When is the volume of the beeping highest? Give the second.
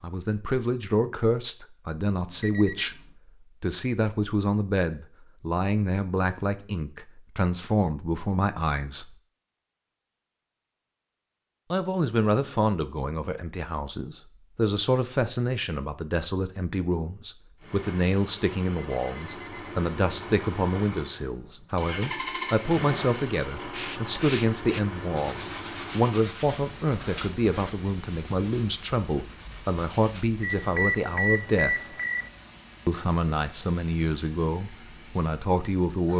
31 s.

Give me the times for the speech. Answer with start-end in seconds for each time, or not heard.
0.0-3.0, 3.6-9.2, 11.7-31.9, 32.9-36.1.